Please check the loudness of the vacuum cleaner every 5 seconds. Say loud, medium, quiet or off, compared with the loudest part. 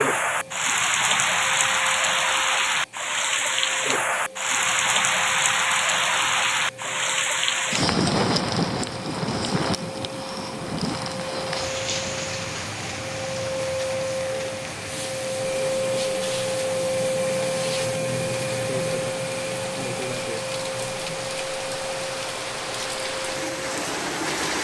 quiet, quiet, medium, loud, medium.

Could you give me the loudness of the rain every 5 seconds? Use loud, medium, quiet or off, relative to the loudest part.
loud, loud, medium, quiet, medium.